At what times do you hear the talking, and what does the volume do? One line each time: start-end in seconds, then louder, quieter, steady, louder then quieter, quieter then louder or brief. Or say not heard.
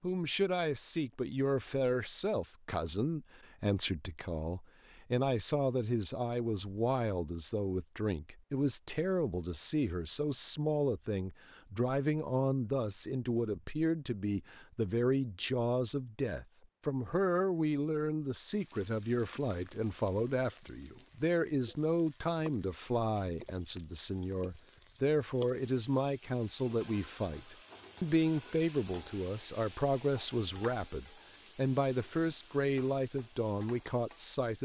0.0-34.6 steady.